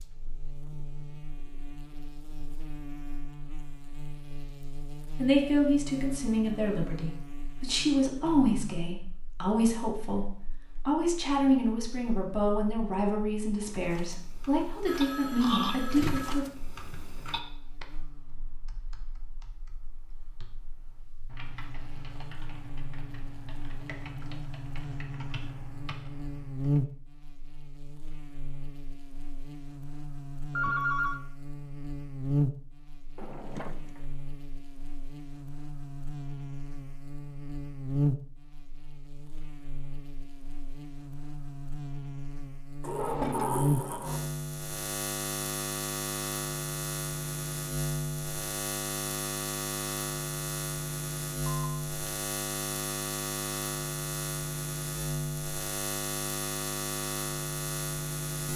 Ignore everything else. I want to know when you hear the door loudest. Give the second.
43 s.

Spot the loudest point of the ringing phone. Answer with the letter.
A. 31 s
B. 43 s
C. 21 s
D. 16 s
A.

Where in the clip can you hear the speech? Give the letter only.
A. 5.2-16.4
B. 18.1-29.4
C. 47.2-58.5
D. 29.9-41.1
A.